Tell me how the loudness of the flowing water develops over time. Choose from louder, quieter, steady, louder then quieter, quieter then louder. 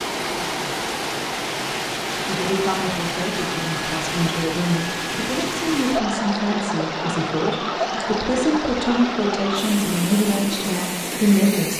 steady.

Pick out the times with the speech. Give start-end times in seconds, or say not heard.
2.2-11.7.